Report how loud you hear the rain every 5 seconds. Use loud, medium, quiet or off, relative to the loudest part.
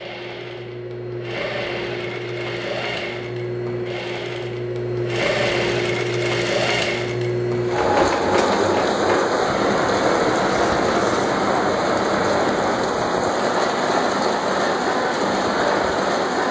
off, loud, loud, loud.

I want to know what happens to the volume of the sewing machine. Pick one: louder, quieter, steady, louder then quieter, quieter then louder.
louder then quieter.